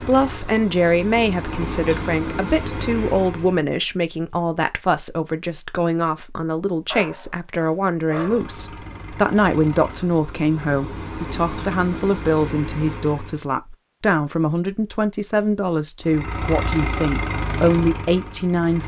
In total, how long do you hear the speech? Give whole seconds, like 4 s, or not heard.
19 s.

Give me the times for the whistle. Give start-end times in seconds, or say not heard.
not heard.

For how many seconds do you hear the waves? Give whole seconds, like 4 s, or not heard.
not heard.